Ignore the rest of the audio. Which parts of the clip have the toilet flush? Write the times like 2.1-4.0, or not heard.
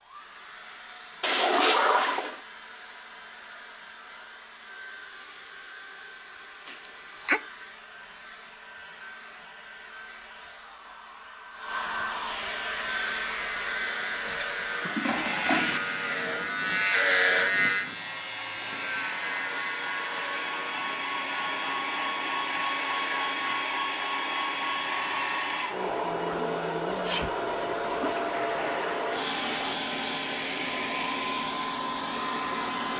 1.2-2.4, 13.8-15.8, 27.9-29.8.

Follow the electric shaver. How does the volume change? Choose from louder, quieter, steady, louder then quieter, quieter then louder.
louder then quieter.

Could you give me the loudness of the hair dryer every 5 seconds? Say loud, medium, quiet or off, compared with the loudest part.
quiet, quiet, medium, medium, loud, loud, loud.